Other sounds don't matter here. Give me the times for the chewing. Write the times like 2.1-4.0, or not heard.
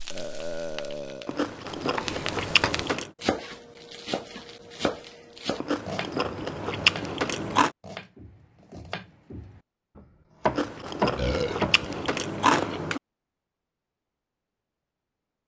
1.2-3.1, 5.5-7.7, 10.4-13.0.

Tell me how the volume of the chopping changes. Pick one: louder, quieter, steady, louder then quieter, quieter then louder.
quieter then louder.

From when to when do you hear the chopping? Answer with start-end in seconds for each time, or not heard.
1.9-11.9.